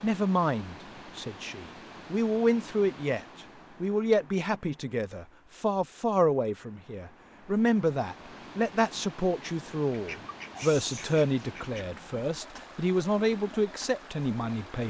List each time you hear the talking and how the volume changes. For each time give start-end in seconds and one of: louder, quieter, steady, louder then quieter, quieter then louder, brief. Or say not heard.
0.0-14.8 steady.